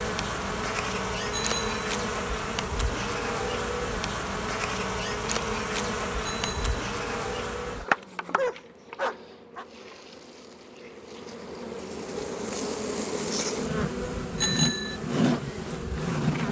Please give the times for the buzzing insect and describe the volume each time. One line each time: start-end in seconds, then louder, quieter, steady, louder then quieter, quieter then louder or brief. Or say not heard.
0.0-16.4 quieter then louder.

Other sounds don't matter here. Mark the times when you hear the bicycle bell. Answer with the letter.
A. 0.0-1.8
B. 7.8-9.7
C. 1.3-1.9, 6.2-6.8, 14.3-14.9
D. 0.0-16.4
C.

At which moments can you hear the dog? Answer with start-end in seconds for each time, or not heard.
7.8-9.7.